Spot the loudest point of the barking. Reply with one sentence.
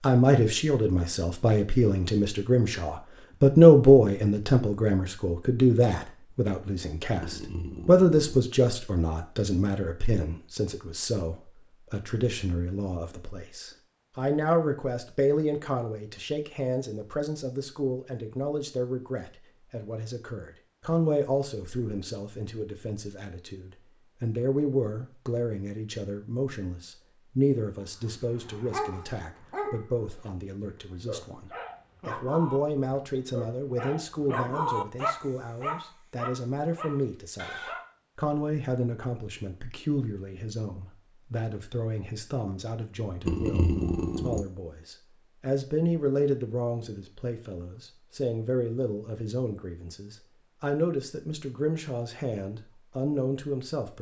The loudest moment of the barking is at 35 seconds.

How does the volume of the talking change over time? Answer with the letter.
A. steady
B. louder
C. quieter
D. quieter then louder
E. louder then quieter
C.